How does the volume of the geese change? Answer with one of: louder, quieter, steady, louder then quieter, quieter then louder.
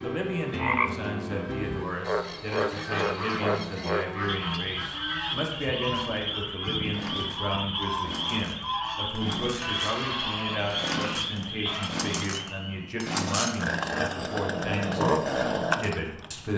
steady.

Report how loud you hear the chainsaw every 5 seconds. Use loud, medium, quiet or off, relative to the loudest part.
quiet, quiet, medium, loud.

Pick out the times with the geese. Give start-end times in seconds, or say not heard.
2.5-11.9.